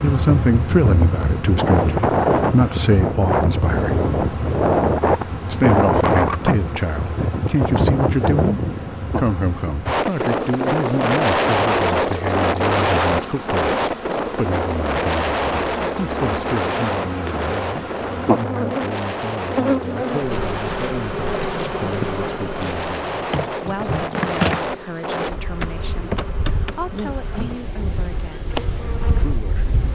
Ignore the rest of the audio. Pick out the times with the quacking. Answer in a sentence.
You can't hear the quacking here.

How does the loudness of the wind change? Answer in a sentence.
The loudness of the wind goes down.